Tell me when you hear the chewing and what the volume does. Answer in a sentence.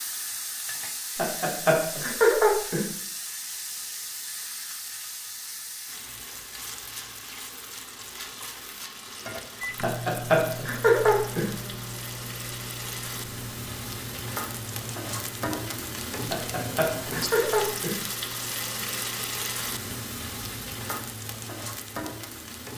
You can't hear the chewing here.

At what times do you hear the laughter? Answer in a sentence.
You can hear the laughter from 1.1 to 2.9 s, from 9.8 to 11.5 s and from 16.3 to 18.0 s.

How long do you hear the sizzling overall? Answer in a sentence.
You can hear the sizzling for 23 seconds altogether.